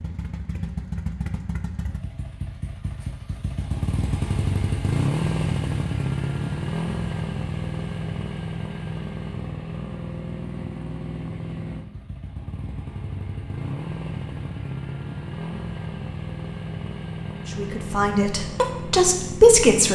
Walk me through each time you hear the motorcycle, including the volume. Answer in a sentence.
The motorcycle can be heard from 0.0 to 19.9 s, getting louder then quieter.